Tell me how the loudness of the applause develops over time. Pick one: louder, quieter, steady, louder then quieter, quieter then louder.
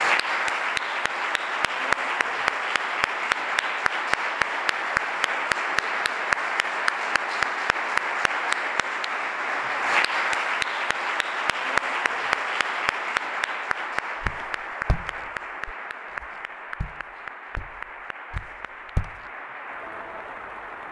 quieter.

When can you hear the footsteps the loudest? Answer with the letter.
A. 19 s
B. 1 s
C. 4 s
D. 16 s
A.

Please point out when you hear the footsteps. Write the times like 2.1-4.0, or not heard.
14.2-19.1.